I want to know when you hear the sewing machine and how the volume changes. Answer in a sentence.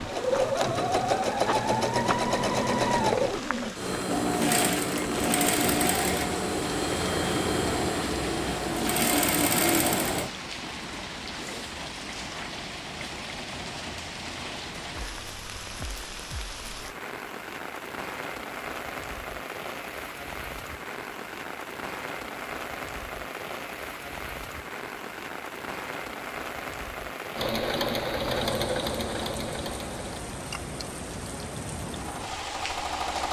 You can hear the sewing machine from 0.0 to 10.3 s, at a steady volume; and from 27.4 to 33.2 s, getting quieter then louder.